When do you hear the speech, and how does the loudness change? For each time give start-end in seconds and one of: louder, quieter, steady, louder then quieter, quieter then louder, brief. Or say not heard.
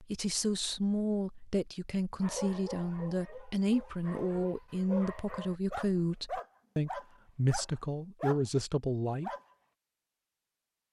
0.0-9.3 steady.